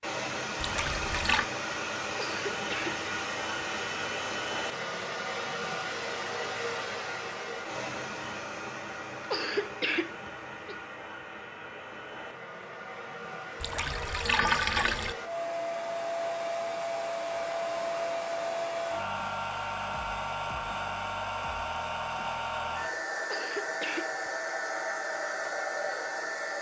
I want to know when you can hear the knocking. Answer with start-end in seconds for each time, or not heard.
not heard.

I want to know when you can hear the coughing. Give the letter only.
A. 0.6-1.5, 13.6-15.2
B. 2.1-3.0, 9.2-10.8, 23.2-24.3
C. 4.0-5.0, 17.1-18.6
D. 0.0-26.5
B.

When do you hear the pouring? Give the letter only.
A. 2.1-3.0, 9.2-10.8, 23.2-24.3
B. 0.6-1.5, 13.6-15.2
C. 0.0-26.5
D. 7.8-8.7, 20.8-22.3
B.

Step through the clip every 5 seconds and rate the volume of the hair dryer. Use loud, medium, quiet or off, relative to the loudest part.
loud, loud, medium, loud, loud, loud.